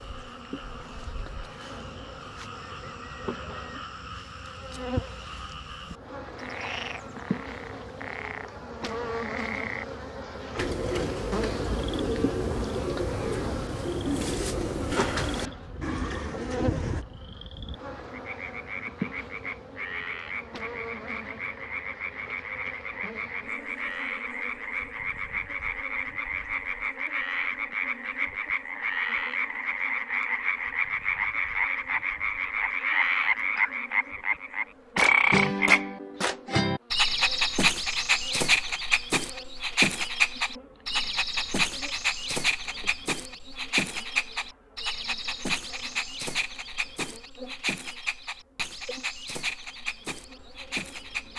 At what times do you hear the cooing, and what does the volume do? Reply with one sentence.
The cooing can be heard from 10.6 to 17.1 s, at a steady volume.